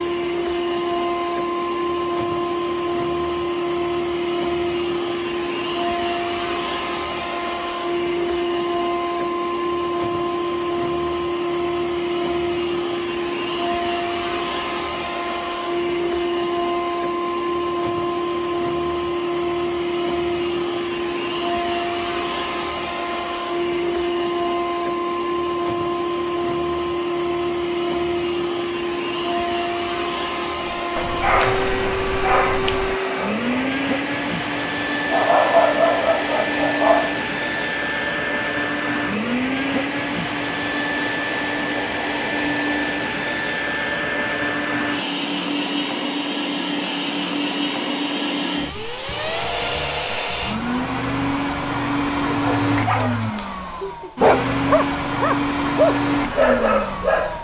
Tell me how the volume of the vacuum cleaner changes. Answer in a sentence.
The volume of the vacuum cleaner stays about the same.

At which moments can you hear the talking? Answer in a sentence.
You can't hear the talking here.